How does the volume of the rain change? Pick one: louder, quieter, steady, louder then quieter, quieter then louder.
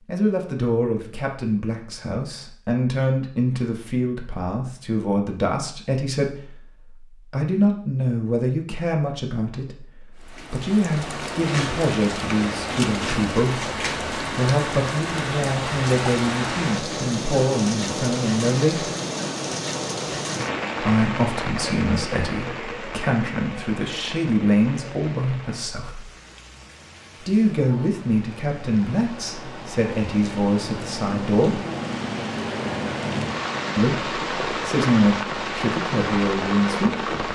quieter then louder.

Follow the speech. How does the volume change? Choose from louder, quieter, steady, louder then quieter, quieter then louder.
steady.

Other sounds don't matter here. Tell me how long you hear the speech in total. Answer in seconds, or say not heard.
32 s.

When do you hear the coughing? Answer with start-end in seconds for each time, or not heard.
not heard.